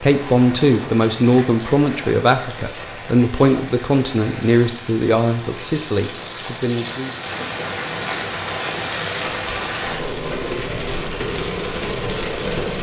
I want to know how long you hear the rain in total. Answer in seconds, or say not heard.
13 s.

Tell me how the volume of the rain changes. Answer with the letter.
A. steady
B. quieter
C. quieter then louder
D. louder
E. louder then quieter
D.